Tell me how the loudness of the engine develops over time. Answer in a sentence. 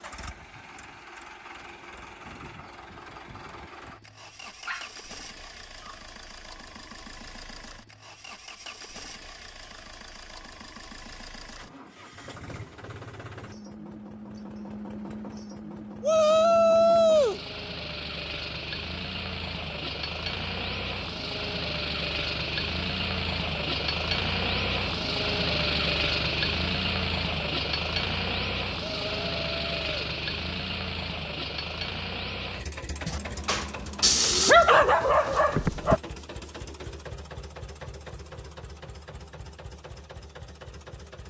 The volume of the engine goes up, then down.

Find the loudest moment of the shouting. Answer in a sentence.
The volume of the shouting peaks at 17 seconds.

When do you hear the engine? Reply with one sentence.
You can hear the engine from 0.0 to 41.2 s.